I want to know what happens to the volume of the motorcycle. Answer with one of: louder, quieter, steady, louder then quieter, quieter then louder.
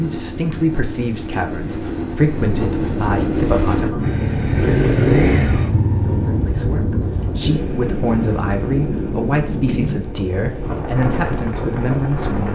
louder then quieter.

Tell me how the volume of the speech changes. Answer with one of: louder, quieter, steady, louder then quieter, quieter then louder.
steady.